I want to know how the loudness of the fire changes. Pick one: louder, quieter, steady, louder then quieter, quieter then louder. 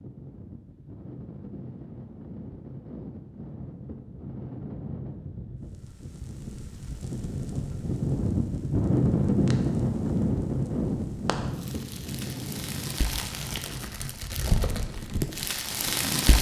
louder.